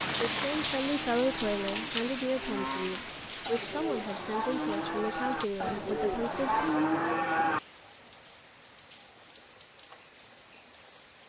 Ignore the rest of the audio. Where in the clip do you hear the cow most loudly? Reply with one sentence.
The volume of the cow peaks at 7 seconds.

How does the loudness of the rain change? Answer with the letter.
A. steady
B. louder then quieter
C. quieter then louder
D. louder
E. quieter
E.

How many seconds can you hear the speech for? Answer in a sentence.
The speech can be heard for 6 seconds in total.